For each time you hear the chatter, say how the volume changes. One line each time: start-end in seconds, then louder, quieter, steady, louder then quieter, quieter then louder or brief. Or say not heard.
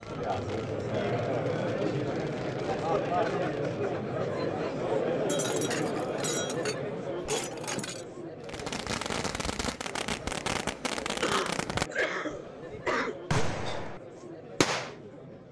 0.0-15.4 quieter.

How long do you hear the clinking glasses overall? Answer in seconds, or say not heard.
3 s.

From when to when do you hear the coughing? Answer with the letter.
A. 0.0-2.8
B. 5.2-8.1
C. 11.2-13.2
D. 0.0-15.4
C.